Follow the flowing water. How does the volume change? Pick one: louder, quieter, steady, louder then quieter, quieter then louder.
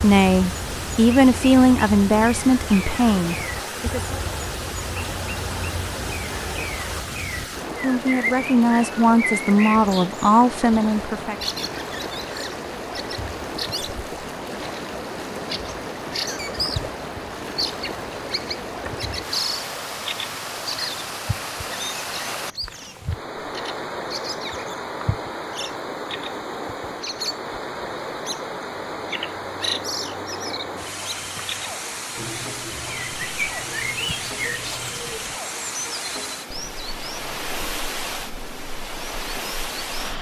steady.